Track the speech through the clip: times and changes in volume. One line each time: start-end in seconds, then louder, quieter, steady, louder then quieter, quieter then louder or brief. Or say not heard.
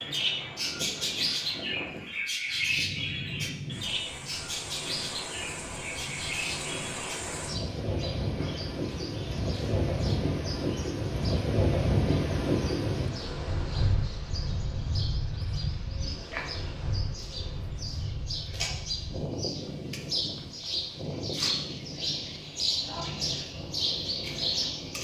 not heard.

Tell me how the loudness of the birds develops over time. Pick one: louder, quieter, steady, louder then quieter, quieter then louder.
quieter then louder.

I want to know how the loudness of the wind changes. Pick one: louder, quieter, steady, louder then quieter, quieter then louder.
louder then quieter.